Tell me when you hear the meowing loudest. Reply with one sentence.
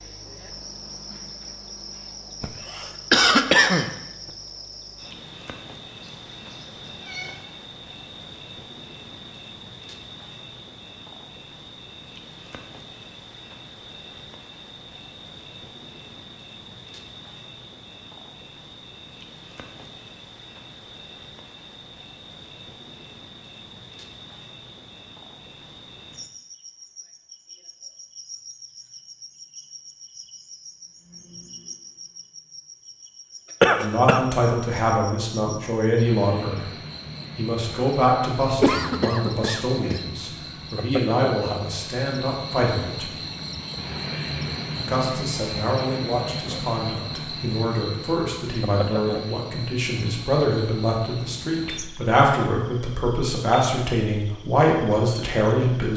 The loudest moment of the meowing is at 7 seconds.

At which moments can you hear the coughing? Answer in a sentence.
The coughing can be heard from 2.4 to 3.9 s, from 33.6 to 34.2 s and from 38.5 to 40.0 s.